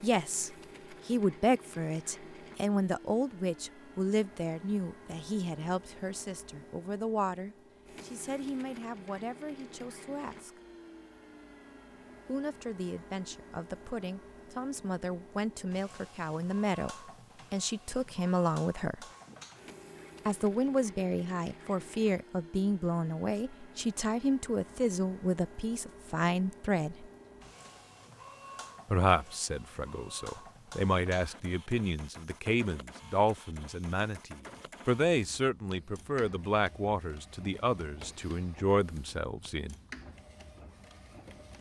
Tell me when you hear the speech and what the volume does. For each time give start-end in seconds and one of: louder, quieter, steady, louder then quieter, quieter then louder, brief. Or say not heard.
0.0-10.6 quieter
12.2-19.1 louder
20.2-27.1 steady
28.9-39.8 steady.